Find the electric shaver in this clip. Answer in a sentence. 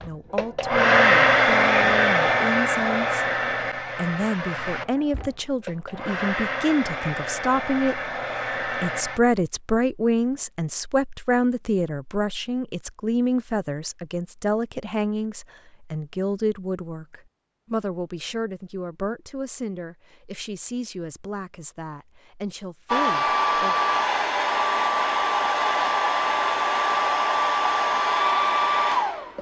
You can't hear the electric shaver here.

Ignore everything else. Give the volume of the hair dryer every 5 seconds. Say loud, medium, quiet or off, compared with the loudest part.
loud, medium, off, off, loud, loud.